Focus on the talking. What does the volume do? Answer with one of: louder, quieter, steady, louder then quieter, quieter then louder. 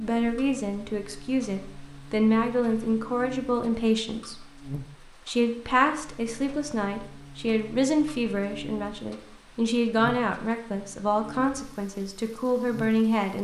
steady.